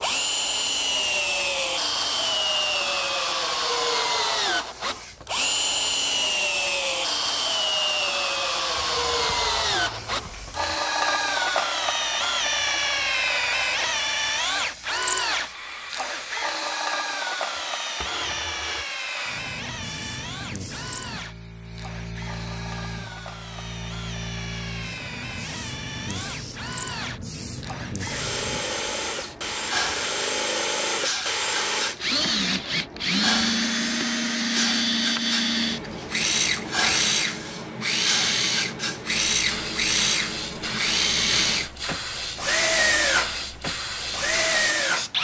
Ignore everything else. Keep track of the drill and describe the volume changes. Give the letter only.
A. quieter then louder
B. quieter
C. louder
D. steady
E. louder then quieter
A.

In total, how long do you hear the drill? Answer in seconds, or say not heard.
45 s.